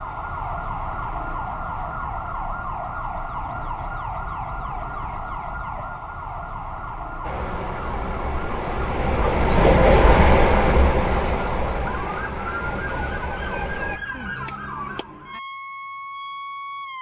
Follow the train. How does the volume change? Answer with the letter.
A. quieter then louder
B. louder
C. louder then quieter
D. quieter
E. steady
C.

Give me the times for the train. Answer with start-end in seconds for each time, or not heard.
7.2-14.0.